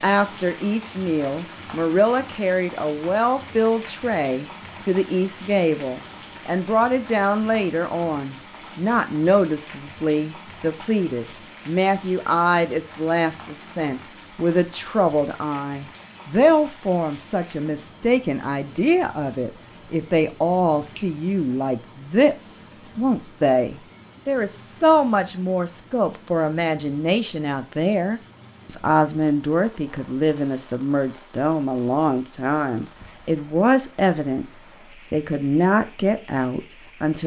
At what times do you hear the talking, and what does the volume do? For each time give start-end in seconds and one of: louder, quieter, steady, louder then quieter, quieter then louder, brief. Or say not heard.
0.0-34.5 steady
35.1-37.2 brief.